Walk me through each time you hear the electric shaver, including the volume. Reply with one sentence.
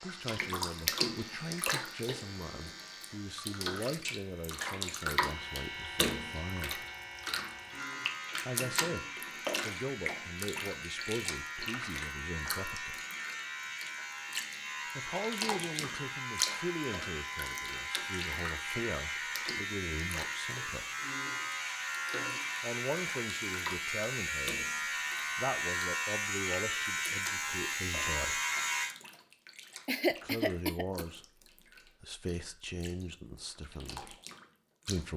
You can hear the electric shaver from 0.0 to 28.9 s, getting louder.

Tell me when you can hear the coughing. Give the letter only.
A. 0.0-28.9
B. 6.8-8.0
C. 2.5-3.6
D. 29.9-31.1
D.